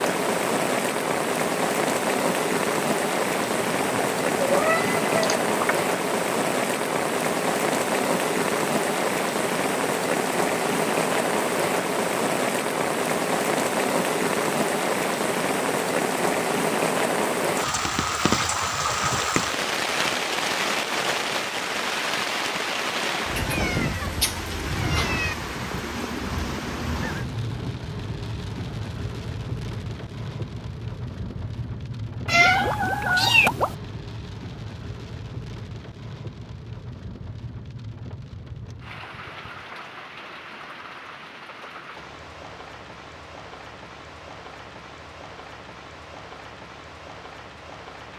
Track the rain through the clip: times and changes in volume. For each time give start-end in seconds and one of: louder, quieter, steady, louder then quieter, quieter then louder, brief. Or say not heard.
0.0-48.1 quieter.